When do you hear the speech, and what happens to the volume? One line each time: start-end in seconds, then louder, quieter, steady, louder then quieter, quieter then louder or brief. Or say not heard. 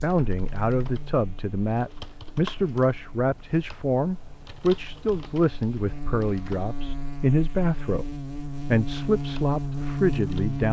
0.0-10.6 steady.